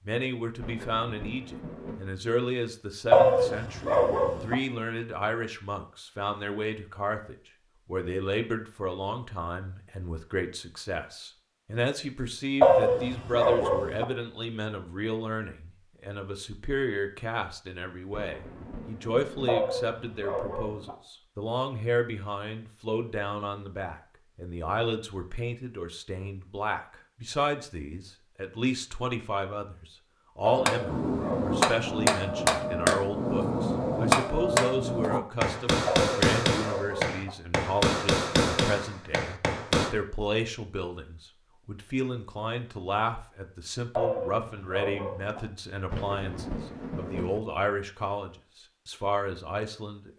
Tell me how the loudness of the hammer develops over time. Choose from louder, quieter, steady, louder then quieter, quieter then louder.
steady.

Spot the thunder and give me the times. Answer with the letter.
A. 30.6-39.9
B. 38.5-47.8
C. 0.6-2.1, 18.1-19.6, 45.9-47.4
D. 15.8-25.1
C.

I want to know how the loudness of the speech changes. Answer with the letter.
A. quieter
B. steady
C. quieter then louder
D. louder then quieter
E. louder
B.